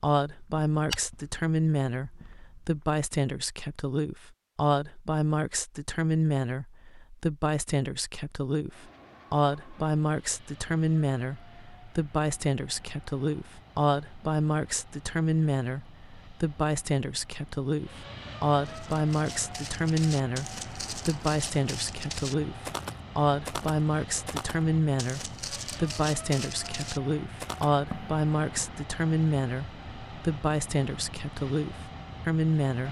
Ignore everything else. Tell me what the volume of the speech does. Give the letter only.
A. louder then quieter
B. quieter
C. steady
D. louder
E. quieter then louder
C.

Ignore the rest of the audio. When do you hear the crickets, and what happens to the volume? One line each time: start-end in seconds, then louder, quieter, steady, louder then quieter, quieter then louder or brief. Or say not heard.
not heard.